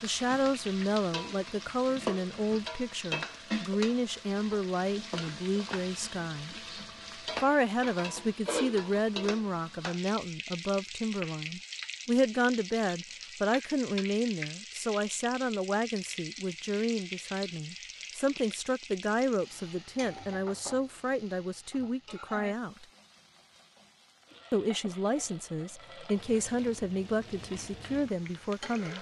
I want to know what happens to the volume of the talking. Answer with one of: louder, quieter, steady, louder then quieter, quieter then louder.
steady.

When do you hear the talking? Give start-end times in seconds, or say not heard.
0.0-6.5, 7.4-22.9, 24.5-28.9.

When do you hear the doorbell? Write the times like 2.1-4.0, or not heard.
not heard.